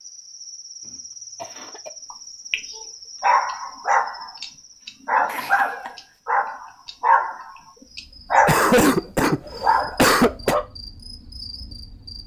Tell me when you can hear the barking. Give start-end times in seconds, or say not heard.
2.1-10.6.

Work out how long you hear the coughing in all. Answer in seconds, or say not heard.
3 s.